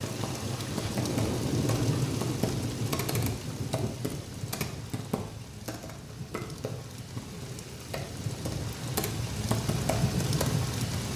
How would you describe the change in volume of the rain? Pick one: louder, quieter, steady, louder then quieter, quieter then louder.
quieter then louder.